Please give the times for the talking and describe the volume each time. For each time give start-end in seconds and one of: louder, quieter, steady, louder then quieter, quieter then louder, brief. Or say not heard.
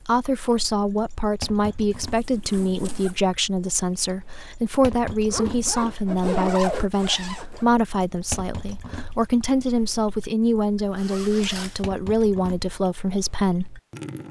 0.0-13.7 steady.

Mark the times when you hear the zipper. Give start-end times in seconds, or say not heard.
2.1-3.2, 5.3-7.7, 10.9-11.8.